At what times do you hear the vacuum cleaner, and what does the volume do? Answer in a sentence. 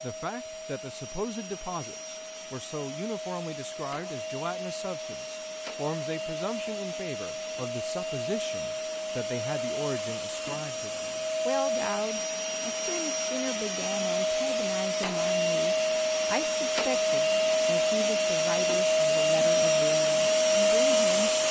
You can hear the vacuum cleaner from 0.0 to 21.4 s, getting louder.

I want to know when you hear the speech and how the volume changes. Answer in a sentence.
The speech can be heard from 0.0 to 21.3 s, at a steady volume.